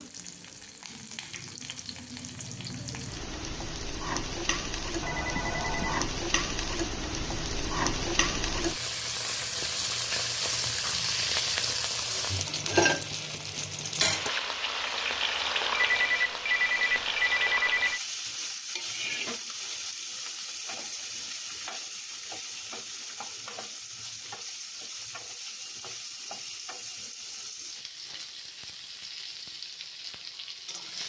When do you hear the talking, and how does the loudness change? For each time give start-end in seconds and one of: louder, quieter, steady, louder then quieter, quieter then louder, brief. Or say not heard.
not heard.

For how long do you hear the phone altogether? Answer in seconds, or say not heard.
3 s.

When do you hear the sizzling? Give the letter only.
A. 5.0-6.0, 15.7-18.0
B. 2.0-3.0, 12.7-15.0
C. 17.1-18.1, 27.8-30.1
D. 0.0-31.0
D.